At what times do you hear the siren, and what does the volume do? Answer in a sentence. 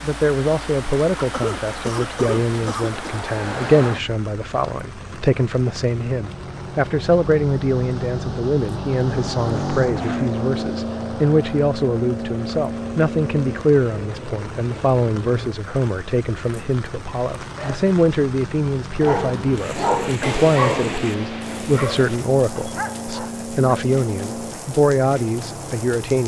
The siren can't be heard in this clip.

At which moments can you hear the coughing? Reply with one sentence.
The coughing can be heard from 1.2 to 3.1 s.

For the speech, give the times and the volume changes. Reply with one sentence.
You can hear the speech from 0.0 to 26.2 s, at a steady volume.